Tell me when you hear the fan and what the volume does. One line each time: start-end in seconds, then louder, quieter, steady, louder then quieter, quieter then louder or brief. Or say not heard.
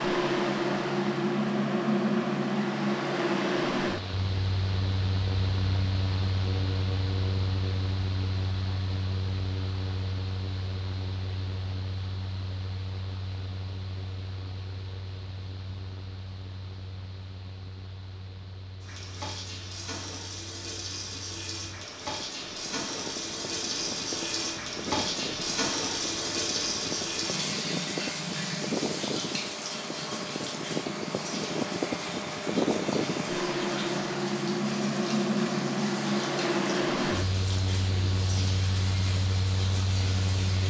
0.0-40.6 quieter then louder.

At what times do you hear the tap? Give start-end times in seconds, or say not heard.
18.8-40.6.